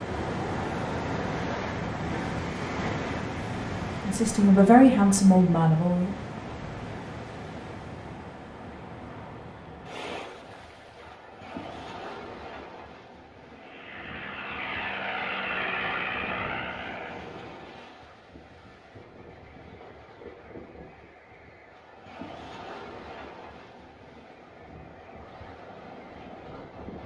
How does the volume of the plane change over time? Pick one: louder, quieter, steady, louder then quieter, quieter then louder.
louder then quieter.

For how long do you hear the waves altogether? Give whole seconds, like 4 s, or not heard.
27 s.